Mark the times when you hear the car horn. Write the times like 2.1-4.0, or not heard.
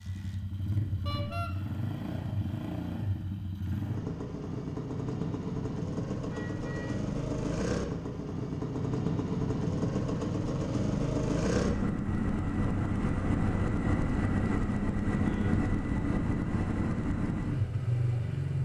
1.1-1.5, 6.2-7.0, 15.2-15.7.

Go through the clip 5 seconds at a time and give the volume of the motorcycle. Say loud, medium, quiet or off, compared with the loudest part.
medium, loud, loud, loud.